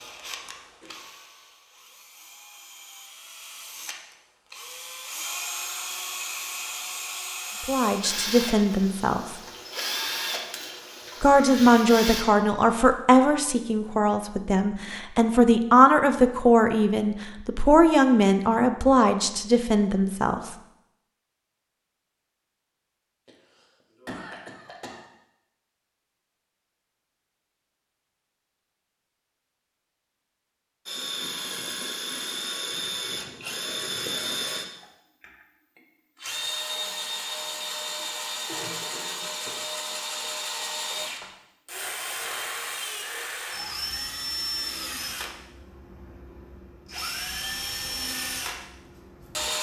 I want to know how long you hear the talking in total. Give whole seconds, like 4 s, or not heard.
11 s.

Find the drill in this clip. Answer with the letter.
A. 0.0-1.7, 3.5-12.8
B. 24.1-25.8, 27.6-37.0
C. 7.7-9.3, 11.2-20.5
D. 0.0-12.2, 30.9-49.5
D.